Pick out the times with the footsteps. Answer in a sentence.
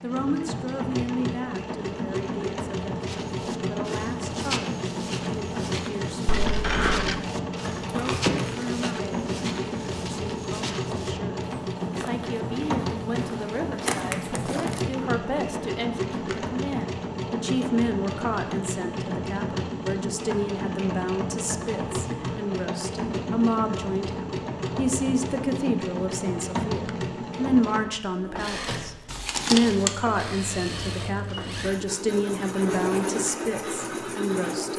You can hear the footsteps from 3.0 to 14.8 s.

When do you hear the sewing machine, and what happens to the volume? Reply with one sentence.
The sewing machine can be heard from 0.0 to 34.7 s, at a steady volume.